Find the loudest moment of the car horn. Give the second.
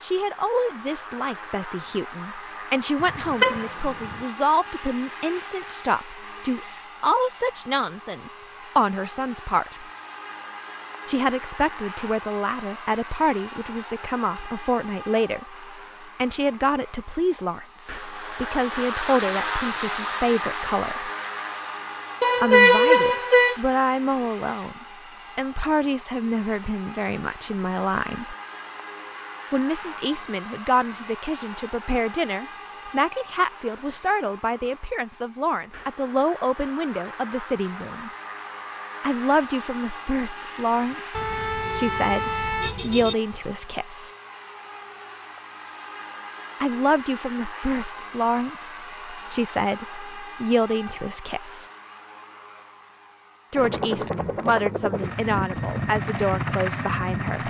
23 s.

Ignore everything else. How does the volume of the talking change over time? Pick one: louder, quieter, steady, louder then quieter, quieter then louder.
steady.